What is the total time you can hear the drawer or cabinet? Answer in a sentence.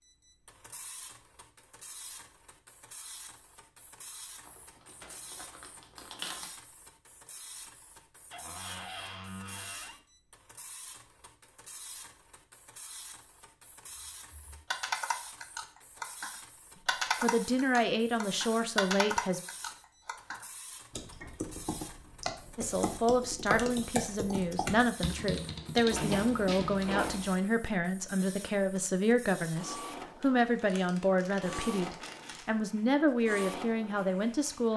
You can hear the drawer or cabinet for 3 seconds altogether.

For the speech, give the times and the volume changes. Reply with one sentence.
You can hear the speech briefly from 17.1 to 19.4 s; and from 22.6 to 34.7 s, at a steady volume.